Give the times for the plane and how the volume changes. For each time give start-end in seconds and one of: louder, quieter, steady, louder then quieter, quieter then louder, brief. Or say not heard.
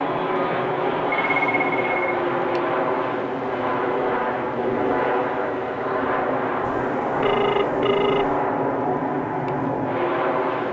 0.0-10.6 steady.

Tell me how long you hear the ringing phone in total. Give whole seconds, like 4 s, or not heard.
3 s.